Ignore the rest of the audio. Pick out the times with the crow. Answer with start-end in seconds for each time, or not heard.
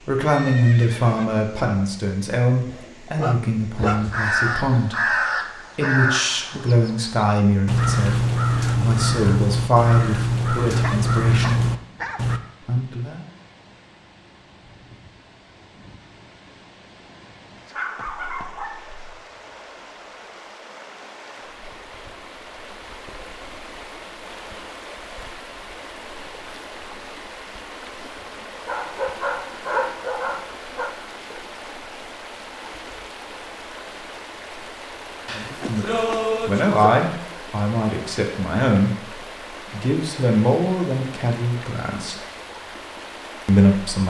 3.8-12.4.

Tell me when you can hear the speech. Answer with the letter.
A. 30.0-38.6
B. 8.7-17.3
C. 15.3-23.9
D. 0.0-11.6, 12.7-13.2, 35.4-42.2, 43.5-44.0
D.